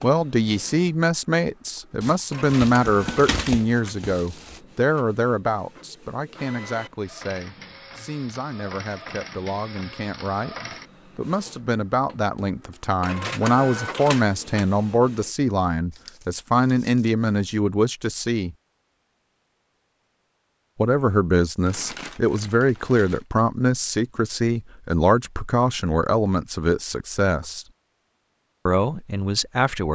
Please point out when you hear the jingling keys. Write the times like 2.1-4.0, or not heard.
not heard.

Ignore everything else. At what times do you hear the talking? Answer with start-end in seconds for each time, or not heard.
0.0-18.6, 20.8-27.6, 28.6-29.9.